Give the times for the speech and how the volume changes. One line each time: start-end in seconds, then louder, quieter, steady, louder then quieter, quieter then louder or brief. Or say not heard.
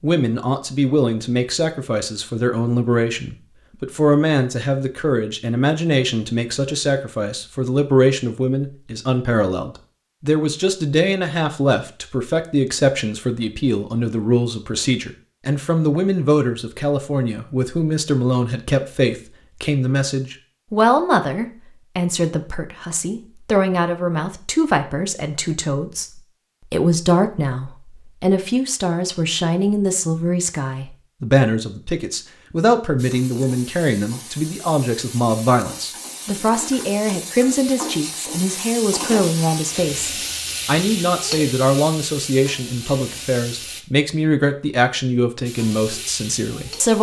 0.0-46.9 steady.